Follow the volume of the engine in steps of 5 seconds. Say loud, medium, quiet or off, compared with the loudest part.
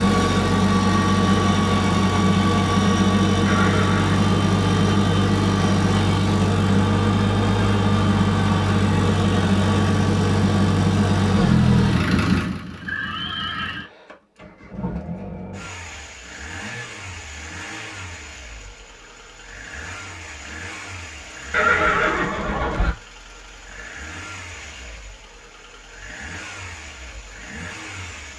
loud, loud, loud, quiet, quiet, quiet.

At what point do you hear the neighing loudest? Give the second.
22 s.